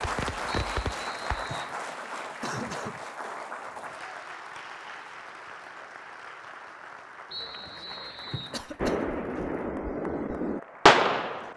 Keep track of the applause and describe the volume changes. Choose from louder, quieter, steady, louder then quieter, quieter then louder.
quieter.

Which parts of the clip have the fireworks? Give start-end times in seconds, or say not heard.
0.0-1.6, 8.8-11.5.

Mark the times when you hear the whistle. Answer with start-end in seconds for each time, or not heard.
0.5-1.8, 7.3-8.6.